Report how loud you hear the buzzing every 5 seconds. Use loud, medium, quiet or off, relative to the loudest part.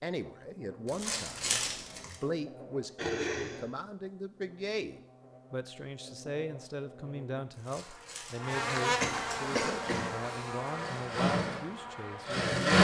quiet, loud, loud.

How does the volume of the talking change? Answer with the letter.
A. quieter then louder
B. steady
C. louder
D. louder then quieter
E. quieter
B.